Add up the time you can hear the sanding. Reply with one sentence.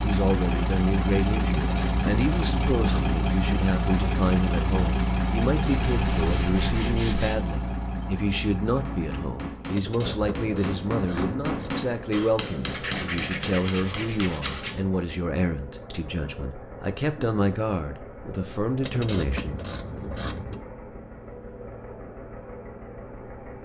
You can hear the sanding for 4 seconds altogether.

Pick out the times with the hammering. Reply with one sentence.
You can hear the hammering from 8.7 to 14.7 s.